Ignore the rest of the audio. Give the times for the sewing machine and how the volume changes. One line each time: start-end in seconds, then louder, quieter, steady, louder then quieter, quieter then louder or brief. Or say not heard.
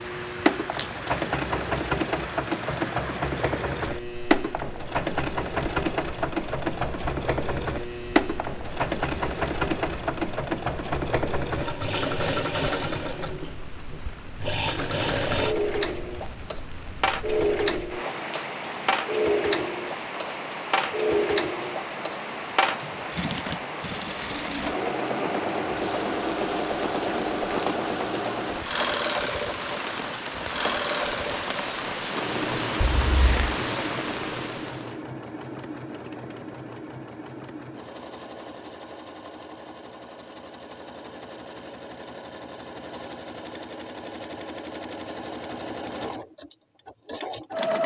0.0-47.8 quieter.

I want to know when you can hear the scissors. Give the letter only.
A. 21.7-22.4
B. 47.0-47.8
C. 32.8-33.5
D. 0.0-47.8
C.